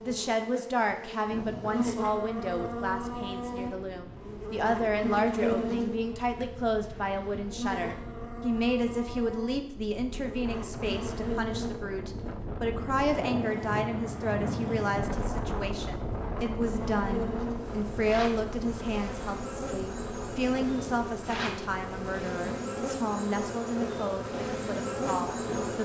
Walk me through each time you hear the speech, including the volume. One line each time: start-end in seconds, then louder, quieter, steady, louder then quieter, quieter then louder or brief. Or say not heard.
0.0-25.8 steady.